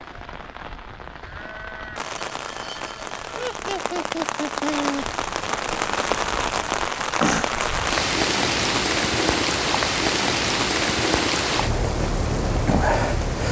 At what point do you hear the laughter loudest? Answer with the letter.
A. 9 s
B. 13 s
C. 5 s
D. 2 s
C.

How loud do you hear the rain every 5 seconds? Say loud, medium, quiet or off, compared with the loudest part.
medium, loud, loud.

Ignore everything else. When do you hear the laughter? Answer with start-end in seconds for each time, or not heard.
3.4-5.0.